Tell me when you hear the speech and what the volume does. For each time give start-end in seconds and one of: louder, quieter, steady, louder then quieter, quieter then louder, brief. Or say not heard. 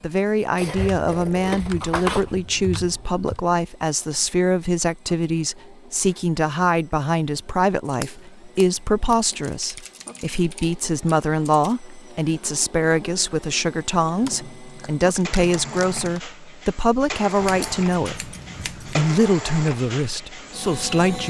0.0-21.2 steady.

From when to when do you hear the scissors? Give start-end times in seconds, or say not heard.
0.6-2.4, 7.8-9.2, 17.4-19.0.